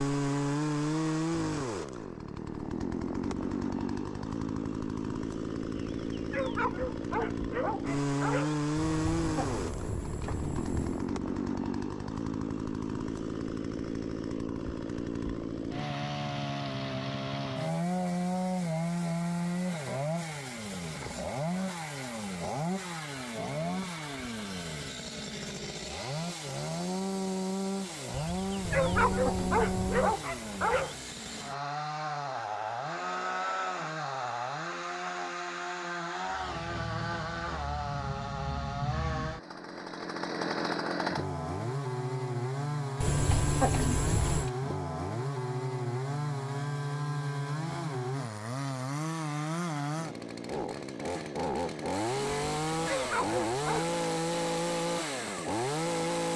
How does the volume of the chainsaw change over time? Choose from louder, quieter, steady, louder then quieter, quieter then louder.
steady.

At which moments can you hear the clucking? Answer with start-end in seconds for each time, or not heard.
8.8-11.1, 28.6-30.1, 43.0-44.5.